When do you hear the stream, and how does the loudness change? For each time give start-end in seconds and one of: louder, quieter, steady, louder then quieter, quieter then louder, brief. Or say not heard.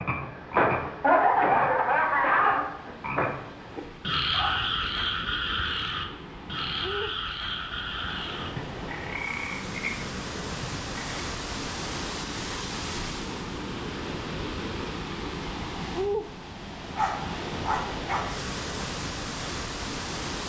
0.0-20.4 louder.